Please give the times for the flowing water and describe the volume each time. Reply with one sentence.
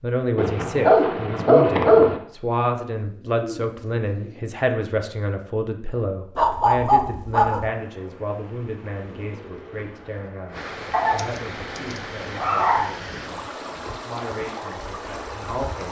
You can hear the flowing water from 7.7 to 15.8 s, getting louder.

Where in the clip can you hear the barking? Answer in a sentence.
The barking can be heard from 0.3 to 2.2 s, from 6.3 to 7.7 s and from 10.9 to 12.8 s.